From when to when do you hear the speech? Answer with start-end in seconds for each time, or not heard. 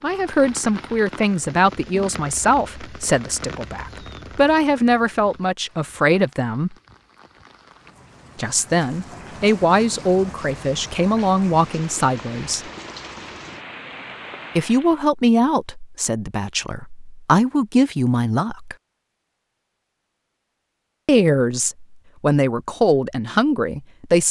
0.0-6.8, 8.3-12.7, 14.6-18.8, 21.1-24.2.